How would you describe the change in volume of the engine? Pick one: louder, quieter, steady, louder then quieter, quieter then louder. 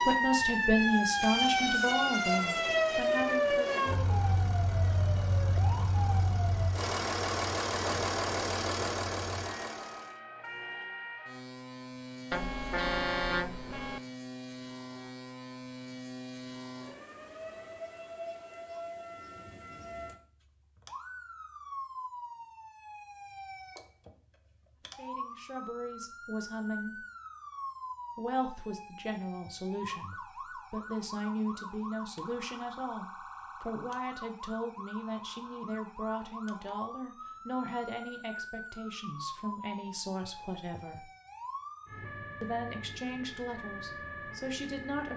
louder.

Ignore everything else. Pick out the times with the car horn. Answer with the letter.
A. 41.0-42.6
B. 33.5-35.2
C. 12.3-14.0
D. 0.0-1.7
C.